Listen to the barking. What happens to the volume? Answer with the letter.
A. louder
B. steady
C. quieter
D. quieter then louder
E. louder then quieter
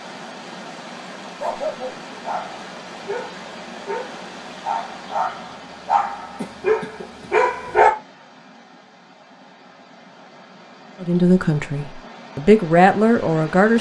A.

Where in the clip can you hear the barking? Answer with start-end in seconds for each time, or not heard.
1.4-7.9.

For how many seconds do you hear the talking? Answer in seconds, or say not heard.
3 s.